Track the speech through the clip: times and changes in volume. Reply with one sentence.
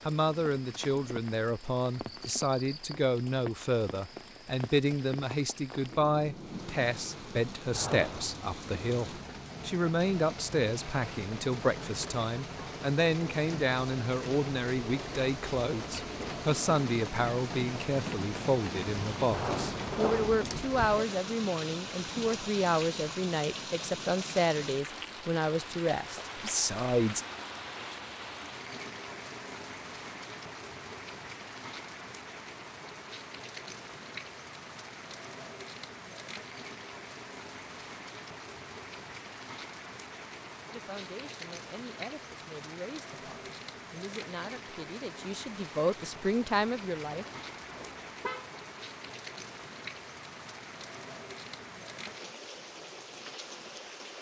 The speech can be heard from 0.1 to 27.2 s, at a steady volume; and from 40.7 to 47.2 s, getting louder.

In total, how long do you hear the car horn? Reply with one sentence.
You can hear the car horn for 3 seconds altogether.